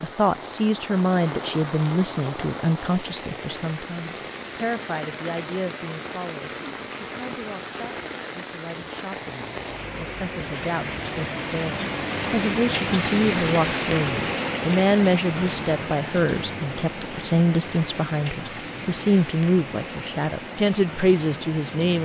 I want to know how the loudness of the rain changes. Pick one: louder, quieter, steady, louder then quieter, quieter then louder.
louder then quieter.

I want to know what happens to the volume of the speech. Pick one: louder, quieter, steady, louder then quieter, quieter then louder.
quieter then louder.